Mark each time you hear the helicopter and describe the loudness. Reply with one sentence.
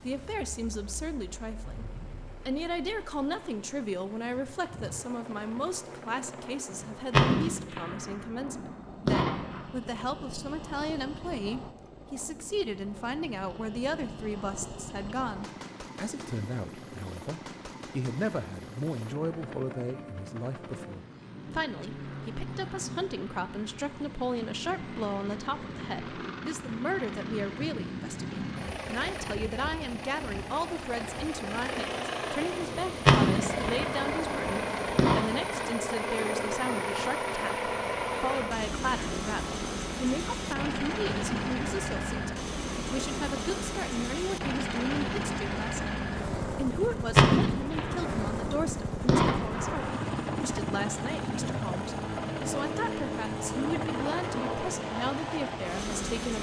The helicopter can be heard from 0.0 to 56.3 s, getting louder.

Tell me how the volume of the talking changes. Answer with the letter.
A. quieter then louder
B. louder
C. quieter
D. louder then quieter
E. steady
E.